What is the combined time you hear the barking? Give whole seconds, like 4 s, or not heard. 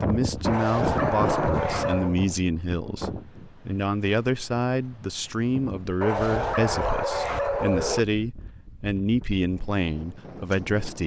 4 s.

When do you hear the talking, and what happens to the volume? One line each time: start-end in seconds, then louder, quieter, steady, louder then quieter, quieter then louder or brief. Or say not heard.
0.0-11.0 steady.